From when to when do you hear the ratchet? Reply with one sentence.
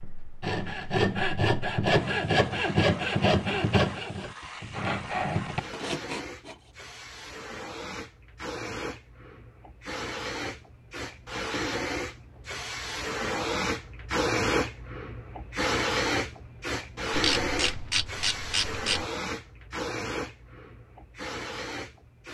You can hear the ratchet from 17.1 to 19.1 s.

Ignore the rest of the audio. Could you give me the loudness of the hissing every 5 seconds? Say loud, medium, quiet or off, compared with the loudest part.
quiet, medium, loud, loud, medium.